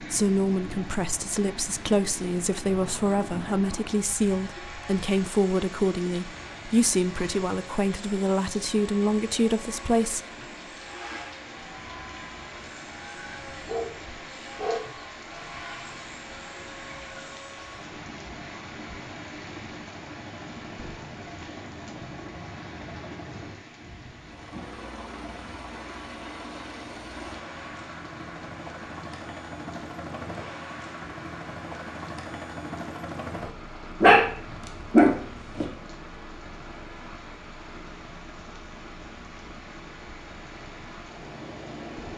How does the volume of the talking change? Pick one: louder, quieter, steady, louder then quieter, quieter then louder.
steady.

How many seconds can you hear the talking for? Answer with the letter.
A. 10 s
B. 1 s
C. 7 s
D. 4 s
A.